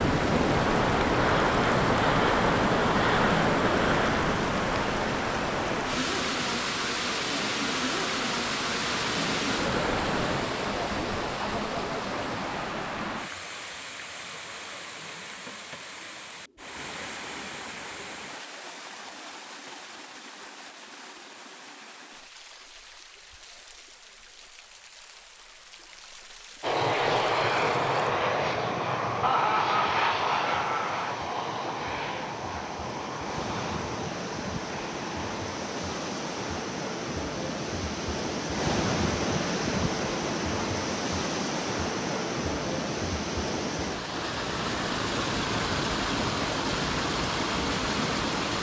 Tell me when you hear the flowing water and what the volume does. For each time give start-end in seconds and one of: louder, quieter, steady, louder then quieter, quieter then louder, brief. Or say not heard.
0.0-48.5 quieter then louder.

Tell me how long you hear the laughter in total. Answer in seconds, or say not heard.
2 s.